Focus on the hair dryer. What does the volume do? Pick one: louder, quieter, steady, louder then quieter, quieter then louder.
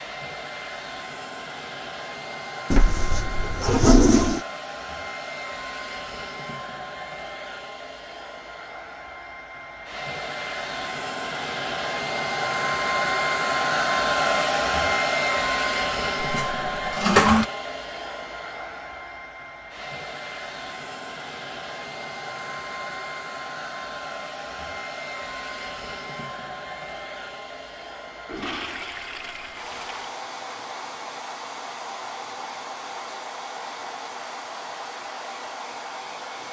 louder then quieter.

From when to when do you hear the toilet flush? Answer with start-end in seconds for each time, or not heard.
2.7-4.4, 16.2-17.4, 28.2-30.1.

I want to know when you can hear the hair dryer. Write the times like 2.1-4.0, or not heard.
0.0-36.4.